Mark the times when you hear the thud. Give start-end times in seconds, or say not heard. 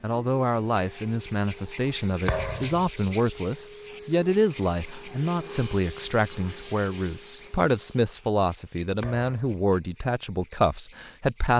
2.2-2.9, 9.0-9.6.